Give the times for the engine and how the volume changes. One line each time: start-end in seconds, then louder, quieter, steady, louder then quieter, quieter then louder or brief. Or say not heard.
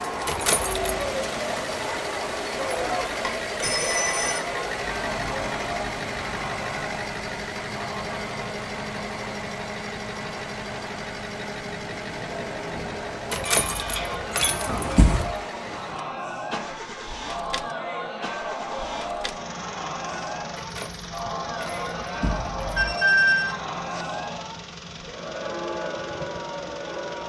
0.0-27.2 quieter.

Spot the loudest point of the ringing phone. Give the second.
23 s.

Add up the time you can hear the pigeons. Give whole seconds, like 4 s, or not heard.
not heard.